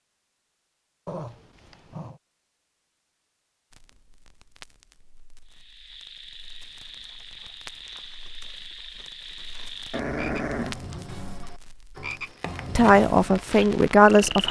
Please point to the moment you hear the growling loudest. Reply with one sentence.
The volume of the growling peaks at 10 seconds.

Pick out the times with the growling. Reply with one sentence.
You can hear the growling from 1.1 to 2.2 s and from 9.9 to 10.8 s.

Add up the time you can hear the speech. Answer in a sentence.
The speech can be heard for 2 seconds in total.